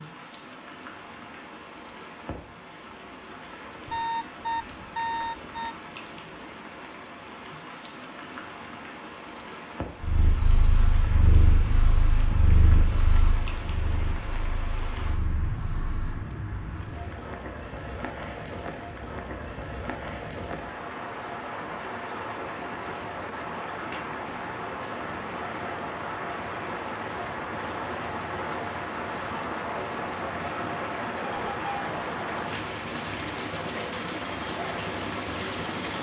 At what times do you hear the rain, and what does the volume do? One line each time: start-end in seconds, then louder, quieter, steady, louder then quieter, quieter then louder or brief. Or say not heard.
0.0-35.9 louder.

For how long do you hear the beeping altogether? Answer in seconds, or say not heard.
4 s.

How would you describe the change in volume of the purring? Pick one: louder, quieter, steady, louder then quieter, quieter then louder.
quieter.